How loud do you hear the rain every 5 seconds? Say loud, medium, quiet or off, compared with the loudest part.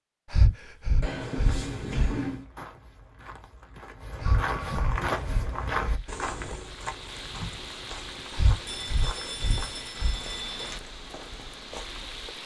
off, loud, loud.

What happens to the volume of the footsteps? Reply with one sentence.
The volume of the footsteps goes up, then down.